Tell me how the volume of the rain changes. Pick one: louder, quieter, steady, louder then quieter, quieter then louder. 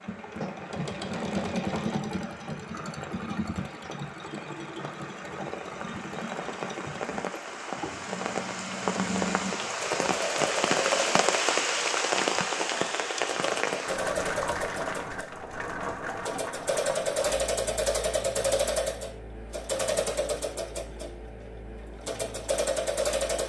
louder then quieter.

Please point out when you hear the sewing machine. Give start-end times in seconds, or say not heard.
0.0-23.4.